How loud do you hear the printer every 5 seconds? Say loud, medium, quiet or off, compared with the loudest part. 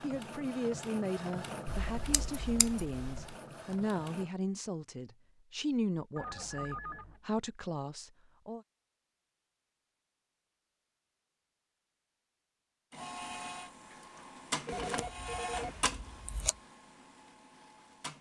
loud, off, loud, loud.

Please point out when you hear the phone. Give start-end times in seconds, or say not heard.
6.2-7.2, 13.8-15.7.